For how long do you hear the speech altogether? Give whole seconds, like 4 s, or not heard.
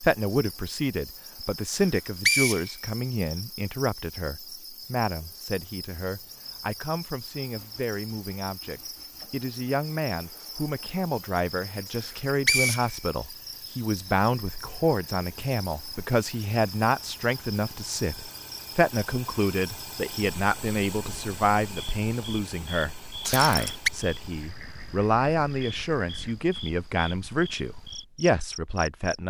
29 s.